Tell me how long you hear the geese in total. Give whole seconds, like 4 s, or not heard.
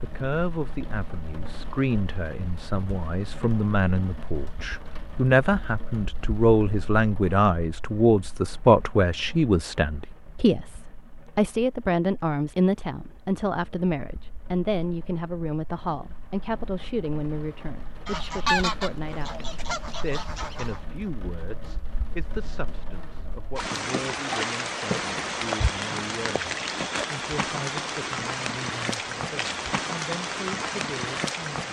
3 s.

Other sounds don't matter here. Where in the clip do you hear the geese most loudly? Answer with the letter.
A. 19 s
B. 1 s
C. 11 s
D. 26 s
A.